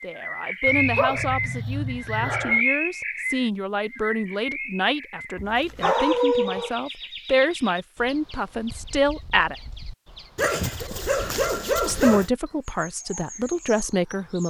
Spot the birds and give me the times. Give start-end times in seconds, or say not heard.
0.0-14.4.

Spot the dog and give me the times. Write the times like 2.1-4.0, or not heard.
0.7-2.6, 5.3-6.8, 10.3-12.3.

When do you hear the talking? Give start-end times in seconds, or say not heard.
0.0-9.6, 11.8-14.4.